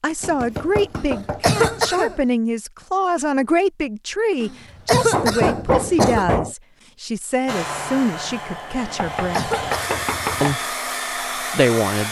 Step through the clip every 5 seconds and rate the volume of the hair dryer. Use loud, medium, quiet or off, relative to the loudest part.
off, loud, loud.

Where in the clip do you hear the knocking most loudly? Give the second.
6 s.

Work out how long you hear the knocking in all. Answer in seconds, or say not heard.
5 s.